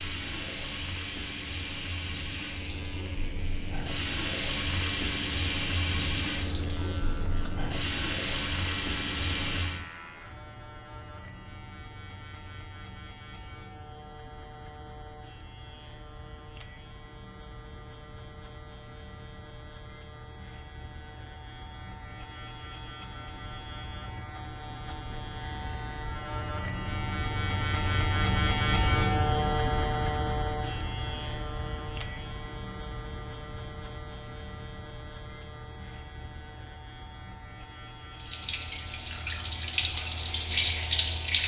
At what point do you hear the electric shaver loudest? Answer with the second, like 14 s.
29 s.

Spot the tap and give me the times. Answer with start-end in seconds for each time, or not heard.
0.0-9.8, 38.1-41.4.